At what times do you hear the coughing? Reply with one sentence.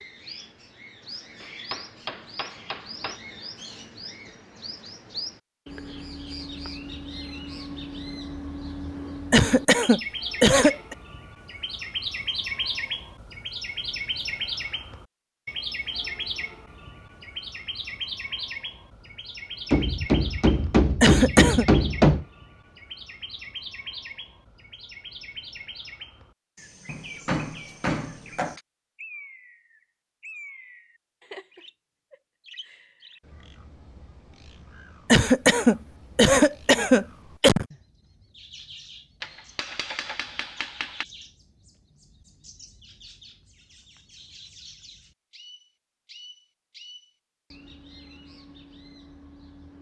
The coughing can be heard from 9.3 to 10.9 s, from 21.0 to 21.6 s and from 35.0 to 37.6 s.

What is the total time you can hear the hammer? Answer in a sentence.
The hammer can be heard for 8 seconds in total.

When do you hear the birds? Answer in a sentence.
The birds can be heard from 0.0 to 49.7 s.